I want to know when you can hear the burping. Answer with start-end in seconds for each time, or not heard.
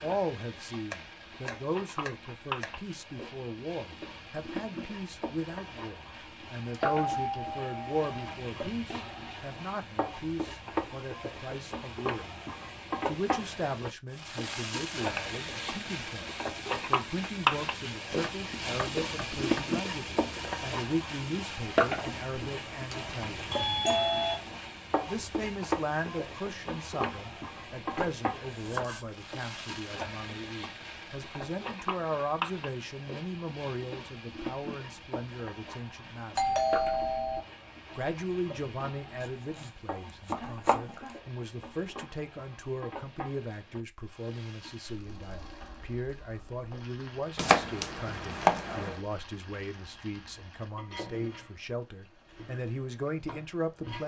not heard.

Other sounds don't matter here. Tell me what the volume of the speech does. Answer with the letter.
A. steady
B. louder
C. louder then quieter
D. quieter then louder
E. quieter
A.